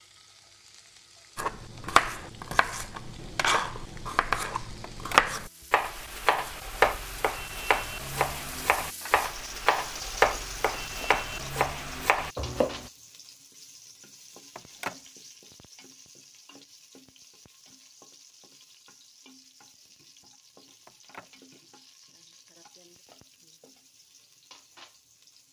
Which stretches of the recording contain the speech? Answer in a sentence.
You can't hear the speech here.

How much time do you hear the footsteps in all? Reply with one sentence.
The footsteps can't be heard in this clip.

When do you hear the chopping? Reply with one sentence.
The chopping can be heard from 1.4 to 12.9 s.